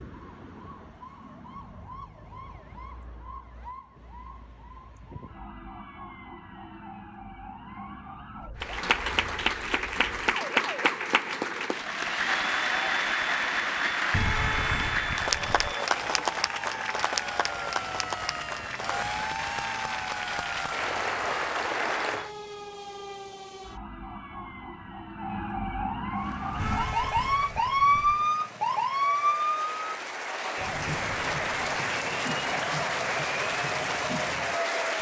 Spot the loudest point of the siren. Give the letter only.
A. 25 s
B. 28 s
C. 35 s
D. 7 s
B.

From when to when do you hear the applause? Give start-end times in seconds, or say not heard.
8.6-22.3, 26.1-34.9.